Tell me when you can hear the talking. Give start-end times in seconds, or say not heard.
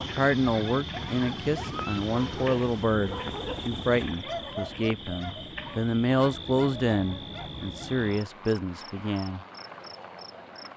0.0-9.4.